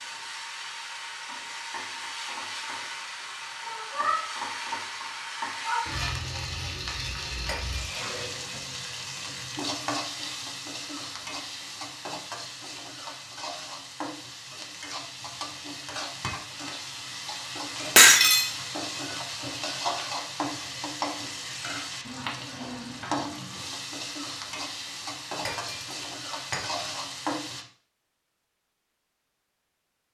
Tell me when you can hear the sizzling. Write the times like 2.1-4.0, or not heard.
0.0-27.6.